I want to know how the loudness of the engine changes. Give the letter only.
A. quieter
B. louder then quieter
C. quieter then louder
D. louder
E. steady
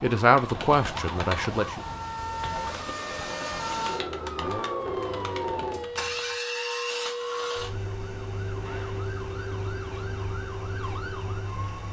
B.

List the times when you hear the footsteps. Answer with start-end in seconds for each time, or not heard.
not heard.